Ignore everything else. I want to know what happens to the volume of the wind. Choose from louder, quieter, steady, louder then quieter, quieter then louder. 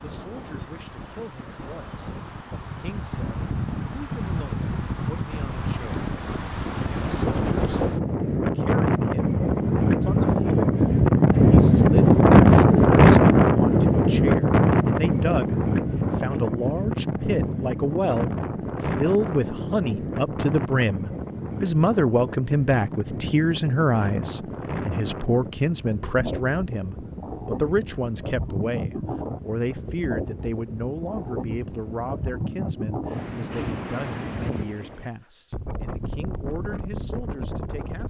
louder then quieter.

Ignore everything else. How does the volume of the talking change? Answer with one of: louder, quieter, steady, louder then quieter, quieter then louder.
louder then quieter.